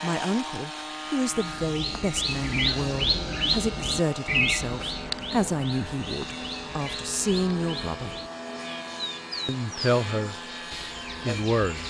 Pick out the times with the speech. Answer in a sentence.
You can hear the speech from 0.0 to 8.2 s, from 9.4 to 10.3 s and from 11.2 to 11.8 s.